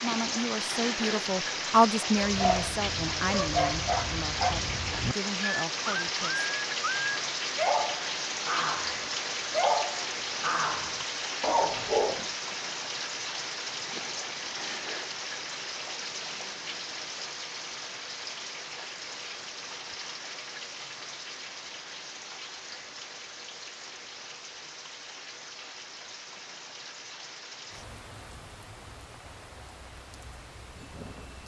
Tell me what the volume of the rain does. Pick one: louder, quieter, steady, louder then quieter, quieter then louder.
quieter.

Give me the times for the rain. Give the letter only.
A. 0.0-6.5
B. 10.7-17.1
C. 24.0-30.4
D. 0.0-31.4
D.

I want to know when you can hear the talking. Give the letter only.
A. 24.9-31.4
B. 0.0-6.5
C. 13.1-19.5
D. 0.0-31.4
B.